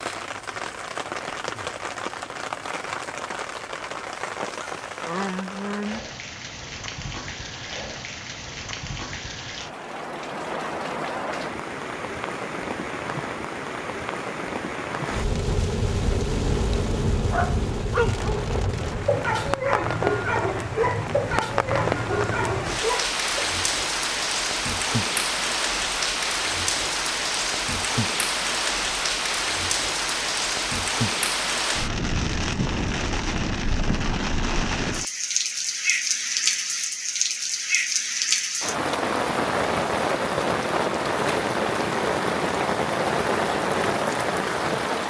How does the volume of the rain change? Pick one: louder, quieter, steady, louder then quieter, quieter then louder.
louder.